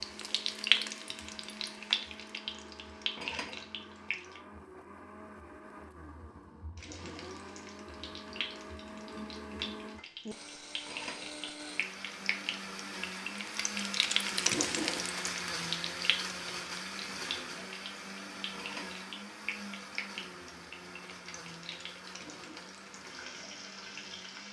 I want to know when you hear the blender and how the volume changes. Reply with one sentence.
You can hear the blender from 0.0 to 24.4 s, getting louder then quieter.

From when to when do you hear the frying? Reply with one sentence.
You can hear the frying from 0.0 to 4.4 s and from 6.8 to 24.4 s.